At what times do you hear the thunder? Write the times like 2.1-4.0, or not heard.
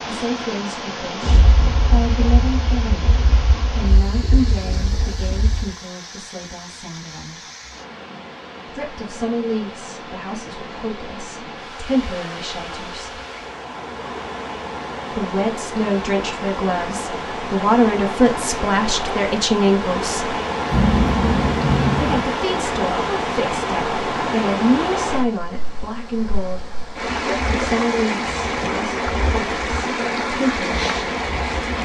1.2-5.8, 20.7-22.2.